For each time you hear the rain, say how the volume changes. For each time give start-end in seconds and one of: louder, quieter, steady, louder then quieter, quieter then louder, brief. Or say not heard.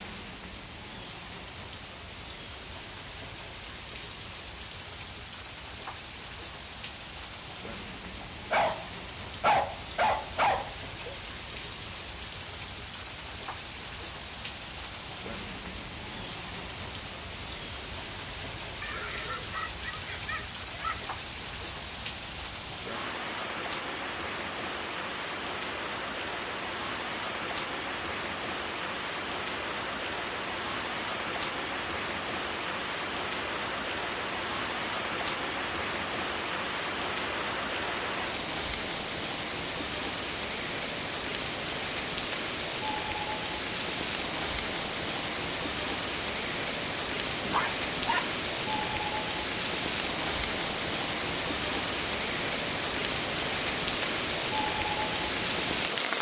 0.0-56.1 louder.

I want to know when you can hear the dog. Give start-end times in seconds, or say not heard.
8.2-11.2, 18.8-21.1, 47.4-49.1.